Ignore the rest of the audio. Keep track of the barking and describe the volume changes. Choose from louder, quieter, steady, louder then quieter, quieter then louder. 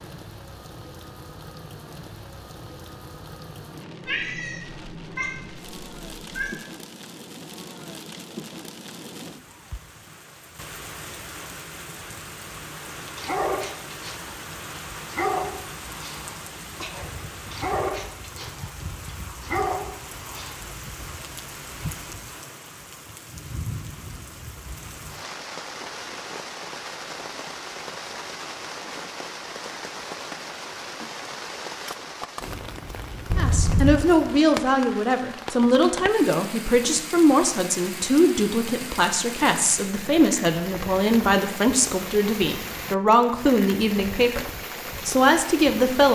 quieter then louder.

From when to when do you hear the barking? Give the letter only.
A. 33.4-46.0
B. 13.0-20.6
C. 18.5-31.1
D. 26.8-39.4
B.